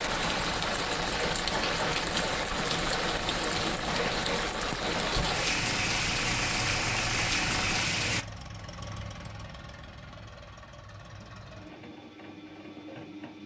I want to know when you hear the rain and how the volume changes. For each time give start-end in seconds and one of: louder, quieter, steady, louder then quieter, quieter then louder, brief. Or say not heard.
0.0-8.2 steady.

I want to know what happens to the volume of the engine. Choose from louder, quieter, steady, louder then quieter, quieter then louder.
quieter.